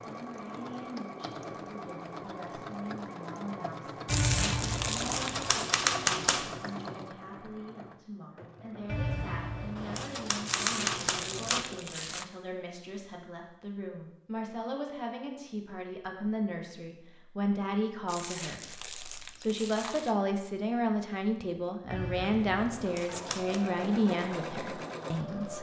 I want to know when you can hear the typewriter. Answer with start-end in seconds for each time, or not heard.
4.0-6.6, 8.8-11.7, 21.9-23.6.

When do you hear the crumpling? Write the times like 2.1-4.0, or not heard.
4.0-5.5, 10.4-12.2, 18.1-20.1.